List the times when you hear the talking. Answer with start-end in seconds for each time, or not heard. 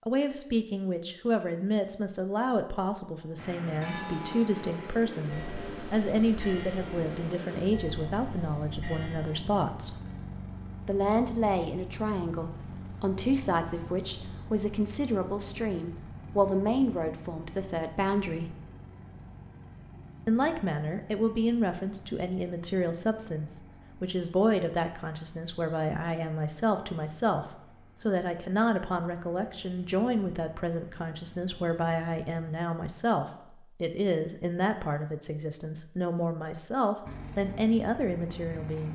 0.1-10.0, 10.8-18.6, 20.2-38.8.